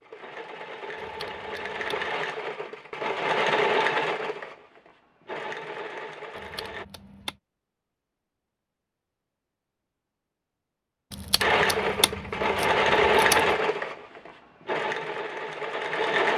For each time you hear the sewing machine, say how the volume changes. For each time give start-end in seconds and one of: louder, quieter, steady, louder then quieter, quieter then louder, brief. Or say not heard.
0.0-6.8 louder then quieter
11.4-16.3 louder then quieter.